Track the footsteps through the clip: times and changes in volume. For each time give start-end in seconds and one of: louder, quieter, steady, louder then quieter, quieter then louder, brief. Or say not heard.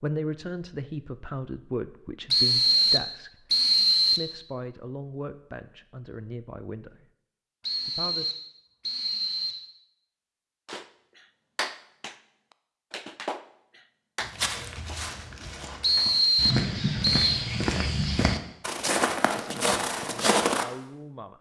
14.2-20.6 louder.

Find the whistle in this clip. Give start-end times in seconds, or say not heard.
2.3-4.3, 7.6-9.7, 15.8-17.4.